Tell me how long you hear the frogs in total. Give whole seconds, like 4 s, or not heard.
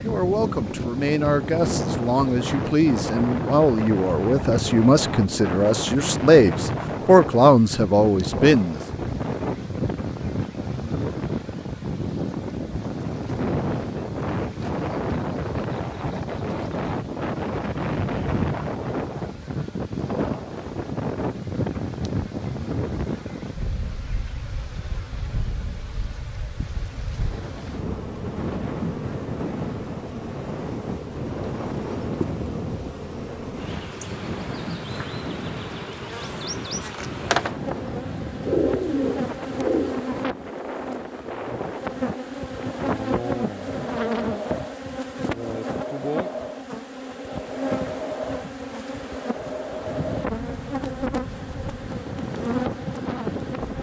not heard.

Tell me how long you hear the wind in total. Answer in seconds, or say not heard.
54 s.